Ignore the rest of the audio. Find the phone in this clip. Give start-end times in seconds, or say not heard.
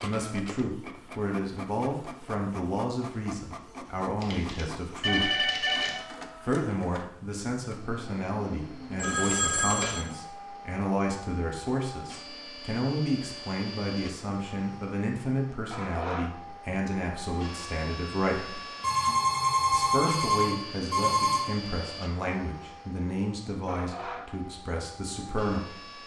4.2-6.0, 8.9-10.1, 18.8-21.4.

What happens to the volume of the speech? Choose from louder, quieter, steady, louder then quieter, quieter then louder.
steady.